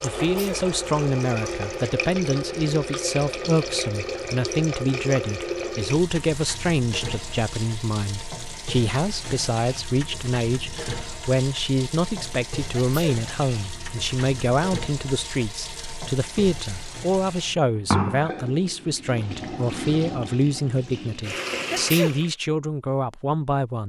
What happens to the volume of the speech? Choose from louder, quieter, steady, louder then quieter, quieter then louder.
steady.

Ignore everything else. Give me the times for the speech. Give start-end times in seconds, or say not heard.
0.0-23.8.